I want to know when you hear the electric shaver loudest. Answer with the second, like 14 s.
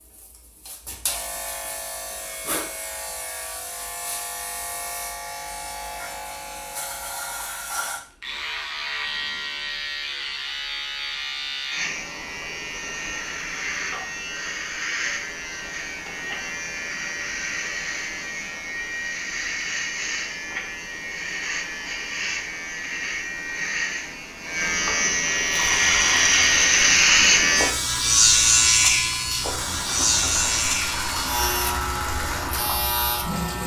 27 s.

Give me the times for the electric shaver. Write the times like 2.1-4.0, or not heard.
0.0-33.6.